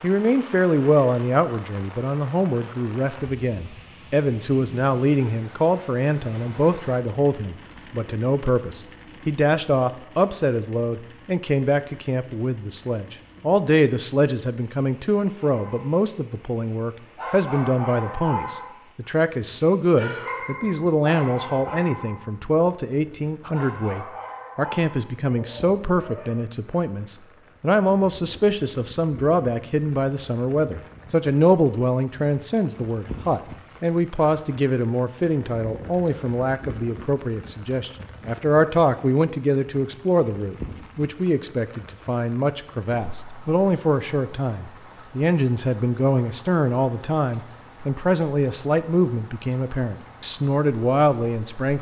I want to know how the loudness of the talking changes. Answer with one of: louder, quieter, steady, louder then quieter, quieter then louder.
steady.